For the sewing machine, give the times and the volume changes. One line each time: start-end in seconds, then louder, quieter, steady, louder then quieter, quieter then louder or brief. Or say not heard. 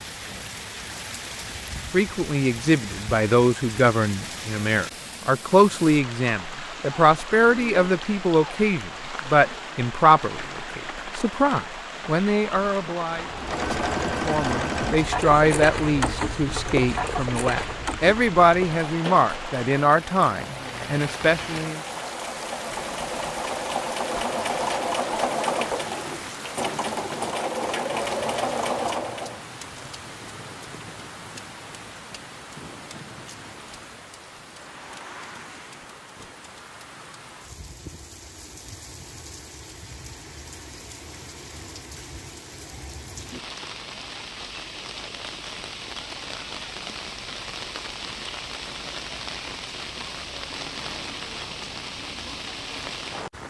13.1-29.4 quieter then louder.